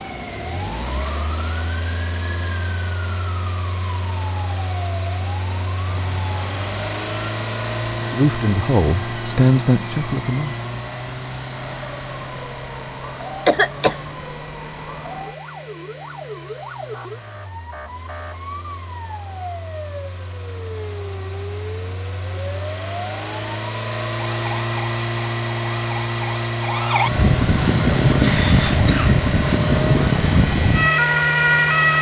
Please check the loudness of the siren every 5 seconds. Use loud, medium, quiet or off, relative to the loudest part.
quiet, quiet, quiet, quiet, quiet, loud, loud.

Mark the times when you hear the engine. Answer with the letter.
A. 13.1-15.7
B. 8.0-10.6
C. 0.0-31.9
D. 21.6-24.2
C.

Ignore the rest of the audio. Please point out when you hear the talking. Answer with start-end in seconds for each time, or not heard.
8.0-10.6.